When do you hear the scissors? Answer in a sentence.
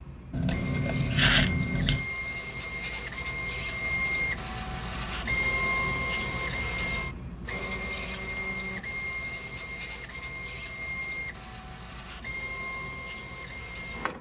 The scissors can be heard from 0.3 to 2.0 s.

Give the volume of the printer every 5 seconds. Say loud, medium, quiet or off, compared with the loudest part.
loud, loud, medium.